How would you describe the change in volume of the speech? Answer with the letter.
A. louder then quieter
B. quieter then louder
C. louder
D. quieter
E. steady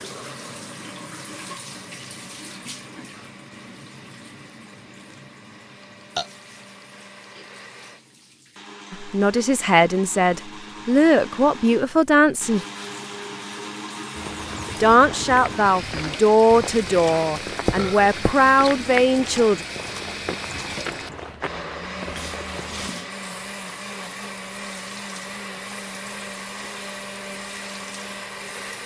E.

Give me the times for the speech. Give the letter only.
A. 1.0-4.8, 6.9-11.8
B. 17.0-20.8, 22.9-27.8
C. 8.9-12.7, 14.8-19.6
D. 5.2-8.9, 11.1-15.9
C.